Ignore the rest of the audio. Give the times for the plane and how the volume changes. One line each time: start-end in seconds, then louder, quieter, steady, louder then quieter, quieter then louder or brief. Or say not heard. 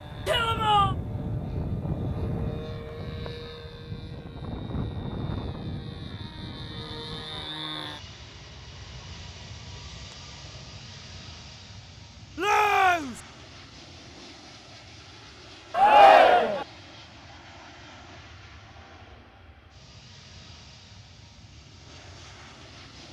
0.0-23.0 quieter.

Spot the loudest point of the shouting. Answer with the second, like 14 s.
16 s.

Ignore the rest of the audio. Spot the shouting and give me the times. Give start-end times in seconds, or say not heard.
0.2-0.9, 12.3-13.2, 15.7-16.6.